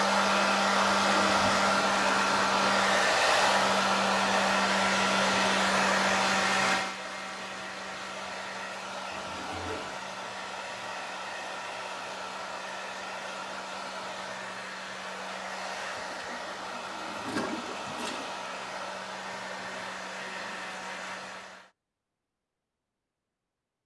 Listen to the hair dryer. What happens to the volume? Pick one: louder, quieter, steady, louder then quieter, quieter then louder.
quieter.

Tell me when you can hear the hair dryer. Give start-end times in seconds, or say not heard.
0.0-21.7.